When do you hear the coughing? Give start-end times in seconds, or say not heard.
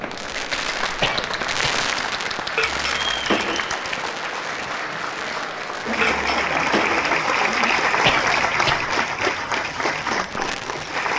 1.0-1.9, 8.0-8.9.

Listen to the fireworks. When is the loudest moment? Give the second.
2 s.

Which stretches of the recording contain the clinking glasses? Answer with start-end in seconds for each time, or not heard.
2.5-3.7, 6.0-7.2.